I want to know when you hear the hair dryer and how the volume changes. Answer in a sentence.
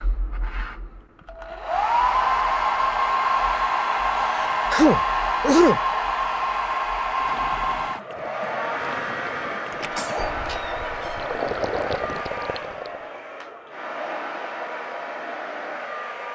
You can hear the hair dryer from 0.0 to 16.2 s, getting quieter.